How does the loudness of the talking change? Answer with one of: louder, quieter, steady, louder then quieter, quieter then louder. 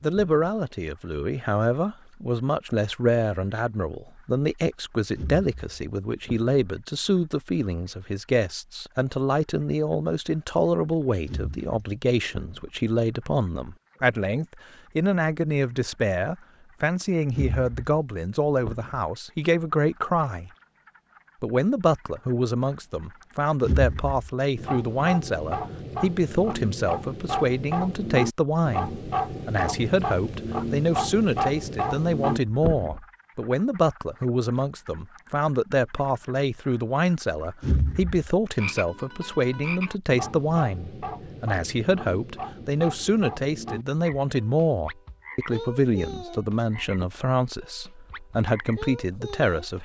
steady.